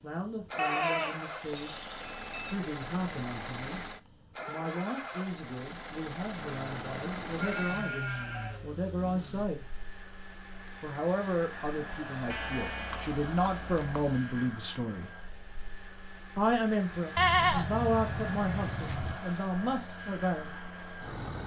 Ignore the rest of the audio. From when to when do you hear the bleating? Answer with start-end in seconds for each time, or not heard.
0.6-2.5, 6.3-8.7, 12.3-14.2, 17.1-19.1.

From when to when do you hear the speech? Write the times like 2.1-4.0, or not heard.
0.0-1.8, 2.5-3.8, 4.5-9.7, 10.8-15.1, 16.4-20.6.